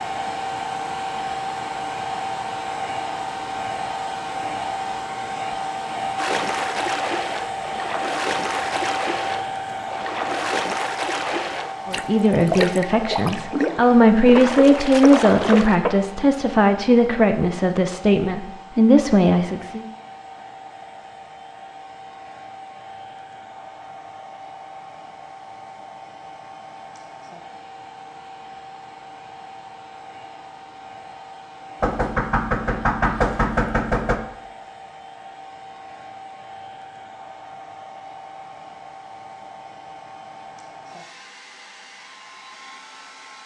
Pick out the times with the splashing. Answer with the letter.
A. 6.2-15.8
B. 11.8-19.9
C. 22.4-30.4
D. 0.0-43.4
A.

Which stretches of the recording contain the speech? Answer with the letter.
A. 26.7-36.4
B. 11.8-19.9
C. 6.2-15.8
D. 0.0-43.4
B.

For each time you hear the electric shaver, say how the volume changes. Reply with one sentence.
You can't hear the electric shaver here.